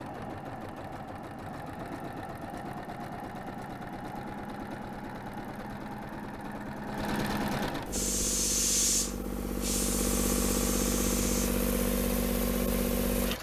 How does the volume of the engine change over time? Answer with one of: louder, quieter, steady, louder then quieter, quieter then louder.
louder.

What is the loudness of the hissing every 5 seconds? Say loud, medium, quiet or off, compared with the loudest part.
off, loud, medium.